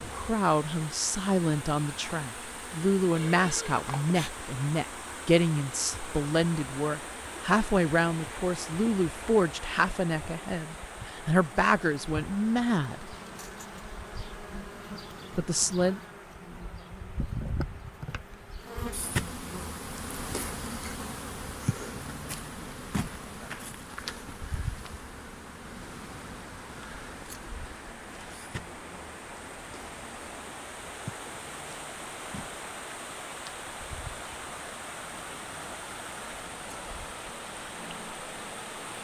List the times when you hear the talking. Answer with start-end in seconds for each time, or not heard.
0.1-13.2, 15.3-16.0.